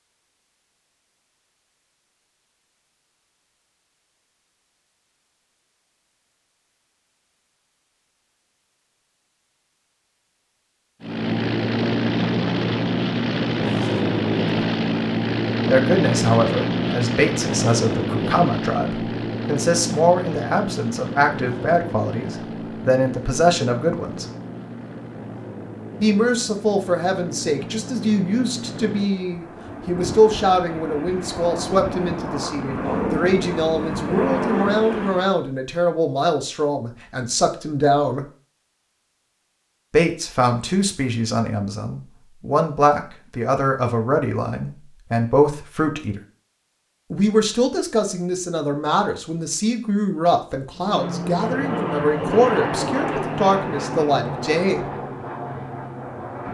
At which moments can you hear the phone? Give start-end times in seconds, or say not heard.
not heard.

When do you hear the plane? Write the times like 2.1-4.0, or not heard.
11.0-35.4, 50.8-56.4.